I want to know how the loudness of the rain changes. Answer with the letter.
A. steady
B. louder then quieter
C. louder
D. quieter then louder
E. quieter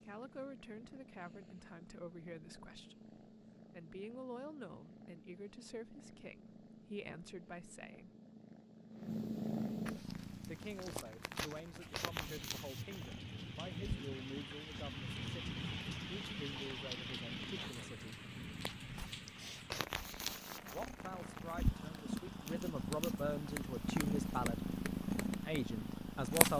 B.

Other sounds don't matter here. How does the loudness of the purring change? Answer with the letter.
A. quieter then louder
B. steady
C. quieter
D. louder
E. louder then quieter
D.